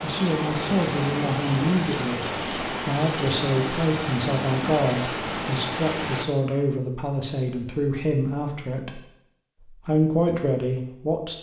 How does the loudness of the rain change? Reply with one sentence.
The loudness of the rain stays about the same.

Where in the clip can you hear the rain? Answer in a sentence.
The rain can be heard from 0.0 to 6.2 s.